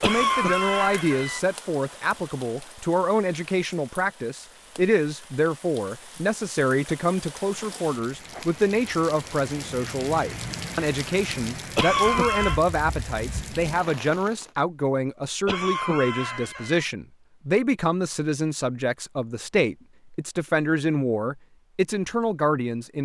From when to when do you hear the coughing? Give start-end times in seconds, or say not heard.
0.0-1.4, 11.8-12.6, 15.4-16.9.